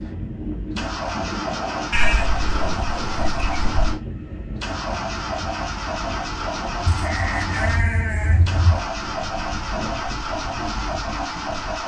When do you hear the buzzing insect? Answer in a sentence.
The buzzing insect can't be heard in this clip.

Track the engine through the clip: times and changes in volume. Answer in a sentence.
The engine can be heard from 0.0 to 11.8 s, at a steady volume.